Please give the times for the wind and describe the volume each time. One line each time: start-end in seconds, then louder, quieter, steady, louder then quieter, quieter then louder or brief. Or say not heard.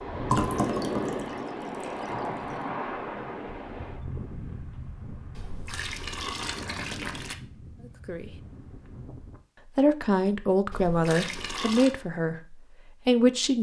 0.0-9.4 quieter.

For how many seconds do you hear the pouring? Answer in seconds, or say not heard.
5 s.